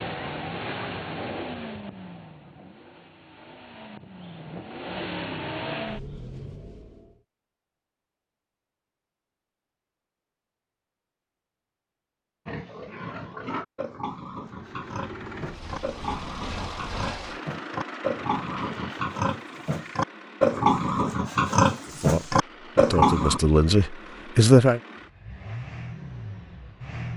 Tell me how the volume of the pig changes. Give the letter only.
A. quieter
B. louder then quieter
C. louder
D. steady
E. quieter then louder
C.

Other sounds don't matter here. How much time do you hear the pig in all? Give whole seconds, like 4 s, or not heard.
11 s.